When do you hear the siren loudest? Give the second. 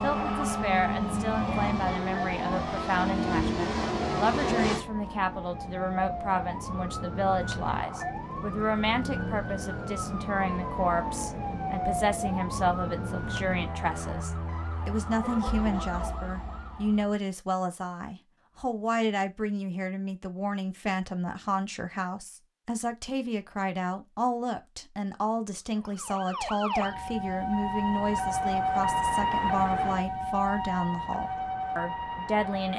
29 s.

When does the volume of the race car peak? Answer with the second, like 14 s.
4 s.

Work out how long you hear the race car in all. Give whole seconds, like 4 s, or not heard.
5 s.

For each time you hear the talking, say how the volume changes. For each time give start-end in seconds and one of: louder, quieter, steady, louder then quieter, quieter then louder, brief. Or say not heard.
0.0-32.7 steady.